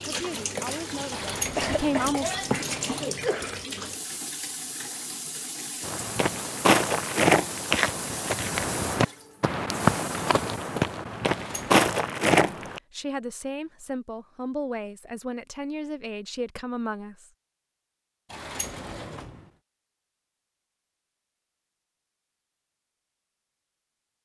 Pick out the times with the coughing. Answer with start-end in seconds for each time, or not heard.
0.9-3.6.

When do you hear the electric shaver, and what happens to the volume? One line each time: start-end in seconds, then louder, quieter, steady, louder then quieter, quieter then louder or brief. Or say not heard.
not heard.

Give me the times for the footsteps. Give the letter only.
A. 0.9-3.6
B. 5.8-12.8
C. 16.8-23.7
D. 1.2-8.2
B.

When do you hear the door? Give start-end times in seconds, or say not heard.
1.1-3.0, 11.2-11.8, 18.3-19.4.